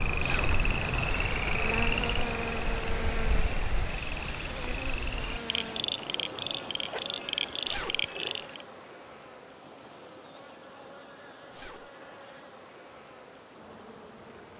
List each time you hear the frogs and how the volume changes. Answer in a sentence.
The frogs can be heard from 0.0 to 8.7 s, getting quieter then louder.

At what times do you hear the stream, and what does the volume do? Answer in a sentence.
The stream can be heard from 0.0 to 14.5 s, getting quieter.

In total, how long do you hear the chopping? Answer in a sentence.
You can't hear the chopping here.